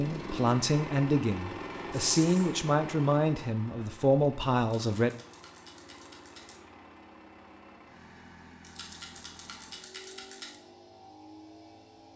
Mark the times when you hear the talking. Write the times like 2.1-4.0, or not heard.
0.0-5.2.